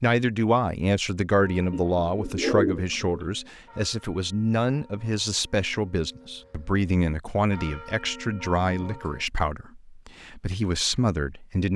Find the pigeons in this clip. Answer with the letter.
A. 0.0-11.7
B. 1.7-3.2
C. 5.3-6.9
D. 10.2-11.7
B.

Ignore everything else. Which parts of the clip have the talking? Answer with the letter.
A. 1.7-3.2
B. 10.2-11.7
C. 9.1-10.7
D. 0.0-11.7
D.